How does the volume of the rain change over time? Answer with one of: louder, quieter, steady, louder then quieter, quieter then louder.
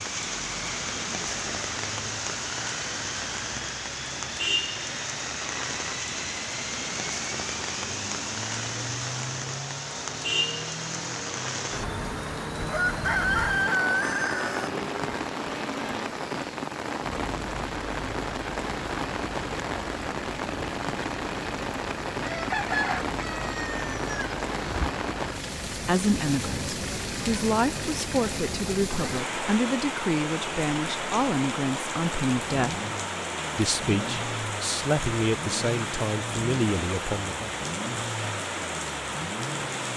steady.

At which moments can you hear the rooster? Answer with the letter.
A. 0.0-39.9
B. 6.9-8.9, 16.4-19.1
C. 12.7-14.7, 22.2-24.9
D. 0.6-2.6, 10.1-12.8
C.